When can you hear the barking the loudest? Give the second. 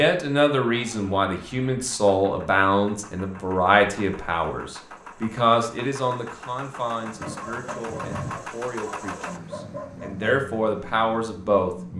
8 s.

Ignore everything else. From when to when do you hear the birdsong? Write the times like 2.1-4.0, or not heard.
not heard.